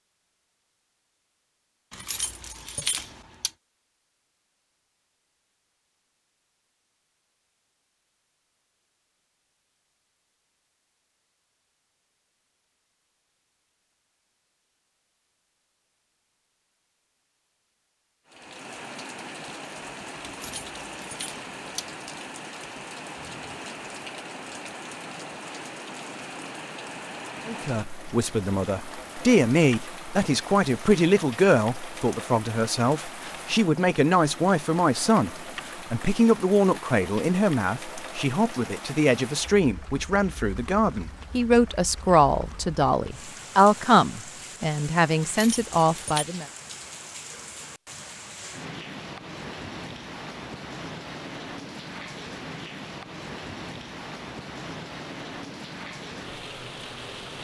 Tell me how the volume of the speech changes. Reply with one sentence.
The volume of the speech stays about the same.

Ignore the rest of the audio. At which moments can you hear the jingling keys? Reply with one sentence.
The jingling keys can be heard from 1.9 to 3.5 s, from 20.3 to 21.9 s and from 45.2 to 46.2 s.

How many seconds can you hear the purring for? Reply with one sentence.
The purring can't be heard in this clip.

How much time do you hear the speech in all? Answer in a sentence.
The speech can be heard for 19 seconds in total.